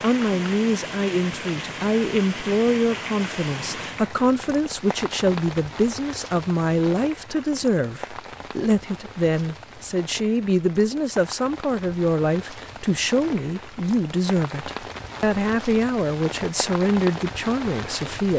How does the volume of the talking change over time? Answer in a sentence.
The loudness of the talking stays about the same.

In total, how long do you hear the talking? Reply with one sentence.
The talking can be heard for 18 seconds in total.